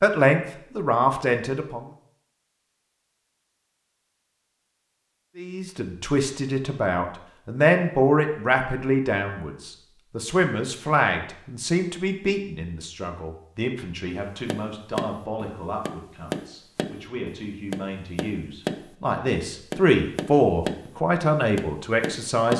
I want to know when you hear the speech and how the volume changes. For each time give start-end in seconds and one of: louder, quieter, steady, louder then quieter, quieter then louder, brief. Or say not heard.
0.0-1.9 brief
5.3-22.5 quieter then louder.